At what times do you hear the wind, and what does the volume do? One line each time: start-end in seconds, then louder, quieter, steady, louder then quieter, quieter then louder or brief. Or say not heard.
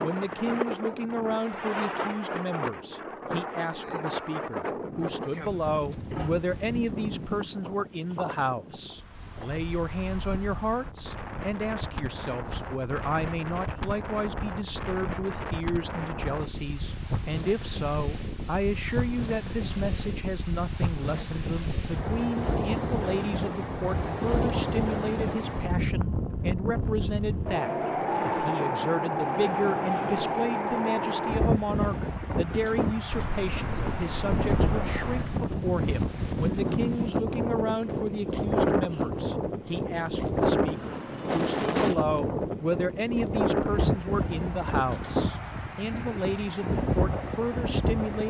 0.0-48.2 louder.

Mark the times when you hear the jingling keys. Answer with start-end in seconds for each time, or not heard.
5.7-6.5, 33.1-35.4.